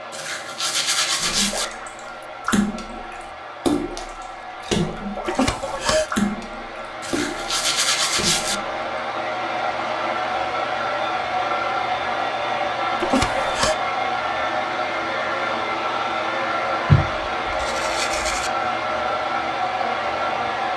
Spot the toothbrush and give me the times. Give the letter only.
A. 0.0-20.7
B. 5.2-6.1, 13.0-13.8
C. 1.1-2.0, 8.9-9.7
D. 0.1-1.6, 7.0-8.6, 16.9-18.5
D.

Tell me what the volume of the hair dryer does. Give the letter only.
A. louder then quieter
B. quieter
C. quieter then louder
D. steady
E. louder
E.